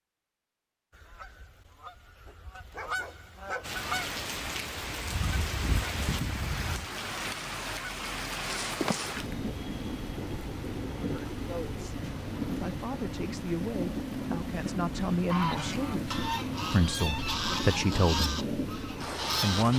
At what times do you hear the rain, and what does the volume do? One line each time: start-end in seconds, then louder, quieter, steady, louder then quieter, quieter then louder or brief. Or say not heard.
3.6-19.7 steady.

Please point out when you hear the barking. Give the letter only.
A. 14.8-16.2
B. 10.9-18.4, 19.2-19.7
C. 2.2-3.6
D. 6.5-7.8
C.